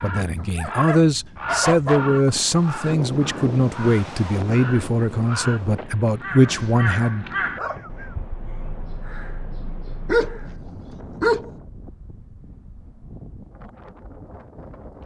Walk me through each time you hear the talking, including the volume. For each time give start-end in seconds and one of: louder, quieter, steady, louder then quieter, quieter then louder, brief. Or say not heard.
0.0-7.2 steady.